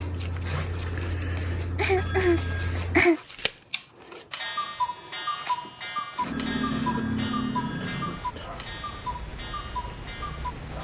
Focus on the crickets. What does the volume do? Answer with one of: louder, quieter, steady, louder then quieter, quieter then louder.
louder then quieter.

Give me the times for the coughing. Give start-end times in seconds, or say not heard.
1.4-3.2, 6.7-8.5.